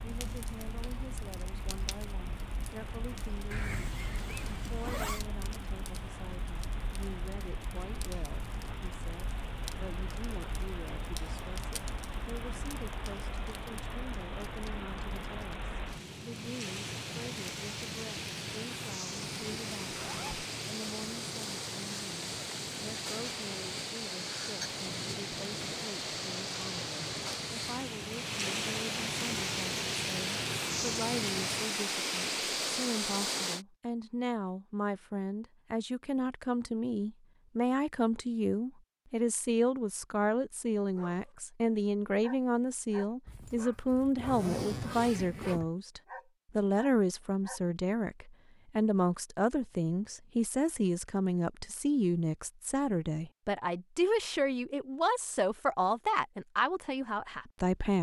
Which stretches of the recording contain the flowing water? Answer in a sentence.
You can hear the flowing water from 0.0 to 33.6 s.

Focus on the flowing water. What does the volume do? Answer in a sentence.
The volume of the flowing water goes up.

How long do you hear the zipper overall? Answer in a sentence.
The zipper can be heard for 5 seconds in total.